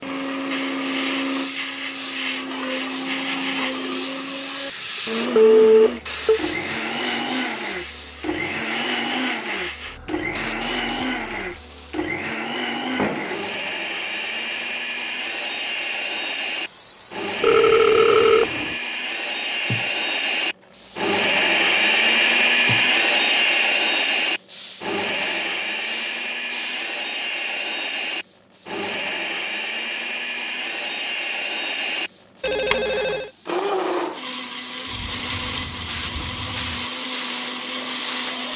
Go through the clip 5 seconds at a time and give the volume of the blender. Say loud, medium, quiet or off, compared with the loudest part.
medium, medium, medium, medium, loud, medium, medium, medium.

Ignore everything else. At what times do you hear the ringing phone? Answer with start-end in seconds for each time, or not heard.
5.3-6.4, 17.4-18.8, 32.4-33.2.